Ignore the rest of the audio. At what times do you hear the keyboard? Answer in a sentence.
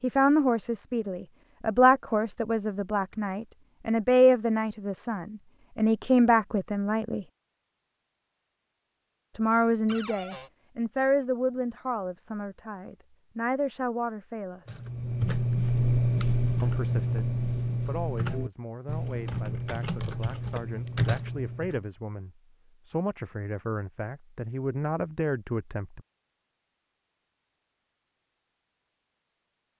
The keyboard can be heard from 14.7 to 21.9 s.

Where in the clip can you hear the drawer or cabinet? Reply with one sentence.
You can hear the drawer or cabinet from 9.8 to 10.5 s.